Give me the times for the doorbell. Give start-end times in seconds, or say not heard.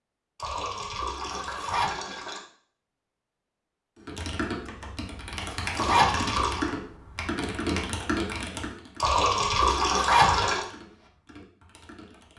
not heard.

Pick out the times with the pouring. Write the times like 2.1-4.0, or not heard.
0.3-2.4, 5.8-6.7, 9.0-10.7.